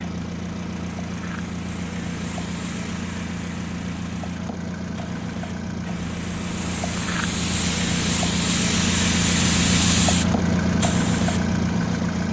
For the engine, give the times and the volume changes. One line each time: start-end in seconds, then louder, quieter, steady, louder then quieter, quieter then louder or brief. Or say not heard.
0.0-12.2 louder.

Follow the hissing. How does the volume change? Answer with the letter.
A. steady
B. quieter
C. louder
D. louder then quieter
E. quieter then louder
C.